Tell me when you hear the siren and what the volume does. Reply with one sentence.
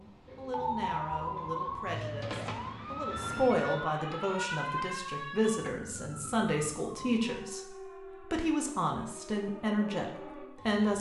The siren can be heard from 0.0 to 10.9 s, getting quieter.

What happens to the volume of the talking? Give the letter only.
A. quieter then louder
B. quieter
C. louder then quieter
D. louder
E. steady
D.